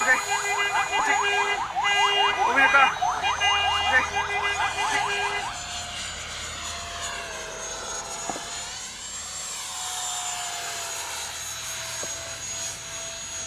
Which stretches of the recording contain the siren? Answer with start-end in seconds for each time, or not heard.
0.0-5.6.